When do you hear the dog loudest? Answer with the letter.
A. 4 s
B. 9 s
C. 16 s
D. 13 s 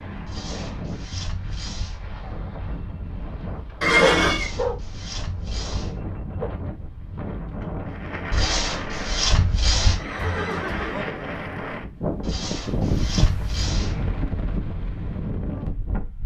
A.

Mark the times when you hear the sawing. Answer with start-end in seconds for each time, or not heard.
0.2-2.0, 4.2-6.0, 8.3-10.0, 12.2-14.1.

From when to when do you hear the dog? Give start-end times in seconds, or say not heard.
4.0-6.5.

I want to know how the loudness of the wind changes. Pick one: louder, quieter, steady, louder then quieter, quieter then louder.
louder.